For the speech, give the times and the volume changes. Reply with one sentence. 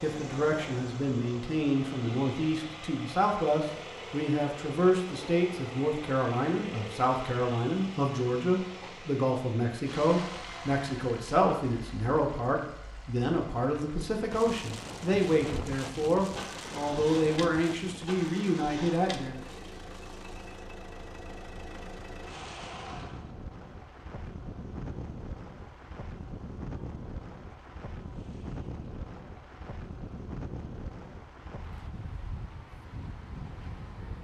The speech can be heard from 0.0 to 19.4 s, at a steady volume.